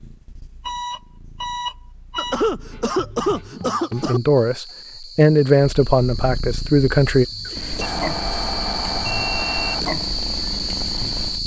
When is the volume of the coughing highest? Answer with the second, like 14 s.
3 s.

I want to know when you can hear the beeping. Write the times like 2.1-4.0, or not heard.
0.6-2.4, 7.8-9.8.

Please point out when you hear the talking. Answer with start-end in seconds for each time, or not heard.
3.9-7.2.